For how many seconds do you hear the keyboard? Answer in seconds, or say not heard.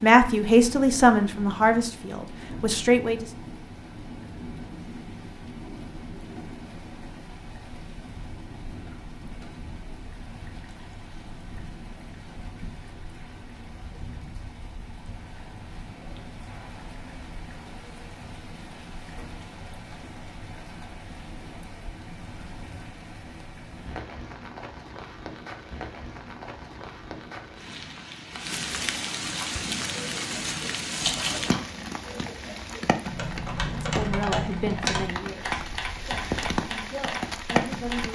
9 s.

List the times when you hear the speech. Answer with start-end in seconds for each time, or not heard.
0.0-3.2, 33.8-38.1.